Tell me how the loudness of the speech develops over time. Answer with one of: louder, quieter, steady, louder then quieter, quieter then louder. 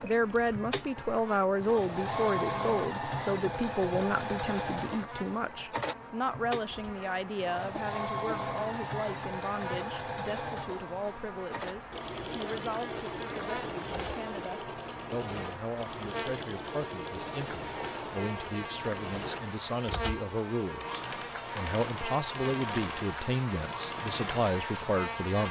quieter then louder.